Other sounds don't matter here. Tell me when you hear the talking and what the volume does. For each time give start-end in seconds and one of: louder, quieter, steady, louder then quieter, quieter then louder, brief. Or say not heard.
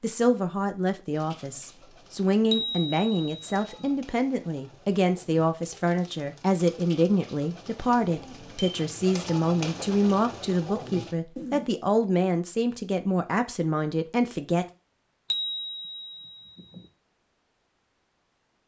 0.0-14.7 steady.